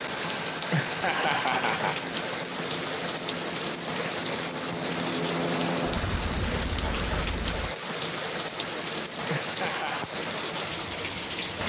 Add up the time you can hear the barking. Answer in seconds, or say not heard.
not heard.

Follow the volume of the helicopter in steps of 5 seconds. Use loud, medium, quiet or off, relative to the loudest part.
medium, loud, off.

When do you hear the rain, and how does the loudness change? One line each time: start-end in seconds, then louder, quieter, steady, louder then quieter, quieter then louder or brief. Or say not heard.
0.0-11.6 steady.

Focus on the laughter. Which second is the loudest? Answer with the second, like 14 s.
1 s.